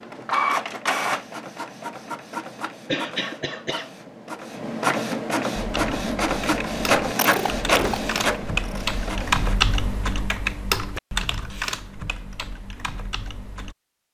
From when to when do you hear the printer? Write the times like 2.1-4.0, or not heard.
0.0-9.6.